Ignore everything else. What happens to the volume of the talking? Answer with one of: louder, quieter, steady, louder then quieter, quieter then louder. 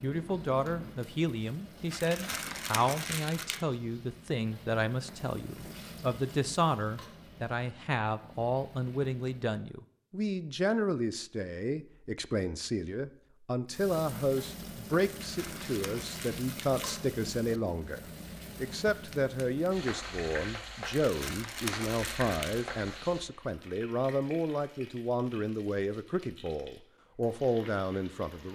steady.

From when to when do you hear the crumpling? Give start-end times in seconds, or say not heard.
1.9-3.6, 15.0-17.0, 20.9-22.6.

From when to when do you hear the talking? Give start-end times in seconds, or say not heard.
0.0-28.5.